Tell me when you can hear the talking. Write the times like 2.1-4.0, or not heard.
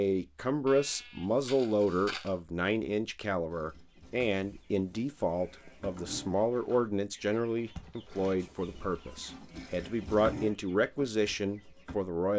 0.0-12.3.